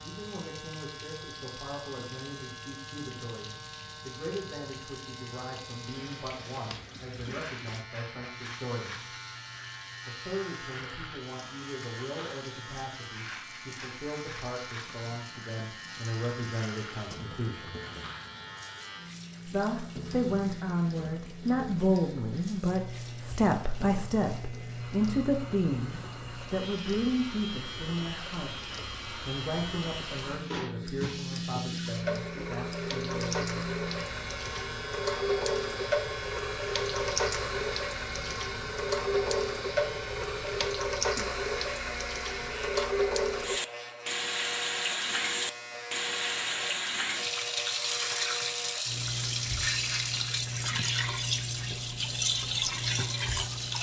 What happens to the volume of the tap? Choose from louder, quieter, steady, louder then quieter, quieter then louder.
louder.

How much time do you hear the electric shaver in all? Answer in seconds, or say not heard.
54 s.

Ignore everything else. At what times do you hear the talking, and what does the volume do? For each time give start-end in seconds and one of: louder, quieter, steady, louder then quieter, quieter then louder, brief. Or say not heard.
0.0-9.2 steady
10.1-17.8 louder
19.4-33.5 quieter.